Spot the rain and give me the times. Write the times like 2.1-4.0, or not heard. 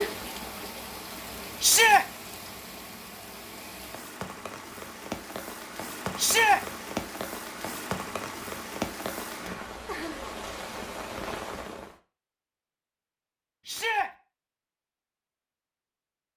0.0-11.9.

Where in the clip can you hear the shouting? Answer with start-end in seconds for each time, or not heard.
1.6-2.0, 6.2-6.6, 13.7-14.1.